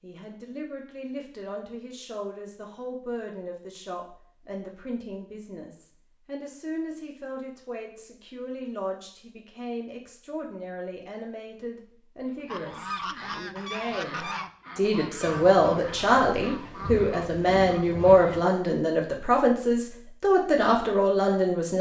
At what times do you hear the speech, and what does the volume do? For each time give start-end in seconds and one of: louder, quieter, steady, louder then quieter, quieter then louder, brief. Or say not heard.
0.0-21.7 louder.